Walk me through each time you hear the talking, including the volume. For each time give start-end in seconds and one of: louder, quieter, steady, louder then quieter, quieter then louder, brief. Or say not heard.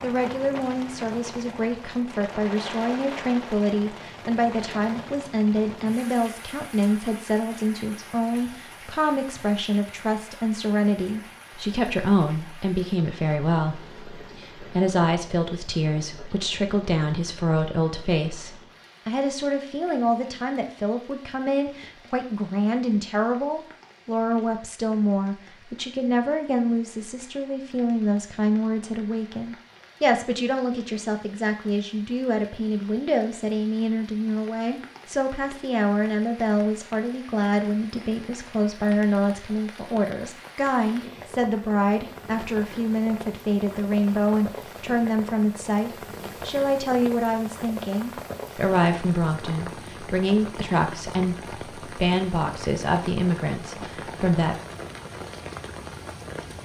0.0-54.5 steady.